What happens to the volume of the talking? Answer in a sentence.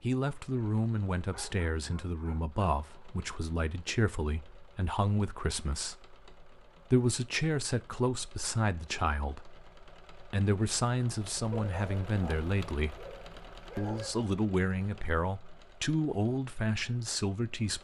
The volume of the talking stays about the same.